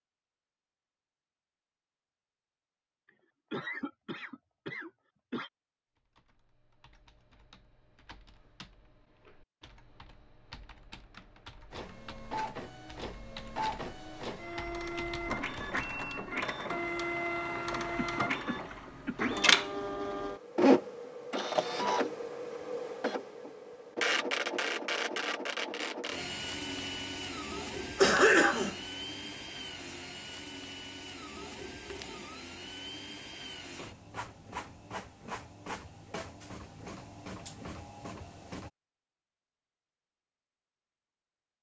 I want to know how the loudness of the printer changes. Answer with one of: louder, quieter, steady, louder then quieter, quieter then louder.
louder then quieter.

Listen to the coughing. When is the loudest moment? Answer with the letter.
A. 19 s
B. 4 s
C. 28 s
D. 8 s
C.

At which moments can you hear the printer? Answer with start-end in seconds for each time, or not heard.
11.7-38.7.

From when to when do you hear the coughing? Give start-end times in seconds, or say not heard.
3.0-5.5, 17.7-19.3, 27.9-28.8.